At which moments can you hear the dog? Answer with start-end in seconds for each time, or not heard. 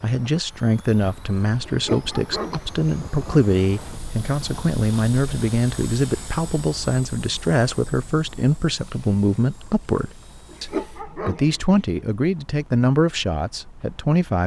1.6-2.9, 10.5-11.8.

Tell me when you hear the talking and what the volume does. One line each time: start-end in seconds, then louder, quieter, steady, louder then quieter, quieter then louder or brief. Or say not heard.
0.0-14.4 steady.